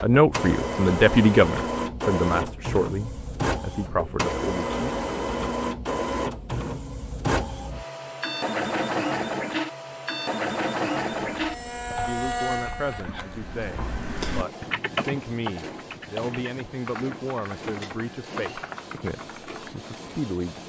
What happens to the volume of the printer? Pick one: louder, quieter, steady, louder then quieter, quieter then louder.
quieter.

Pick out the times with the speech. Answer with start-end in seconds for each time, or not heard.
0.0-4.9, 12.1-20.6.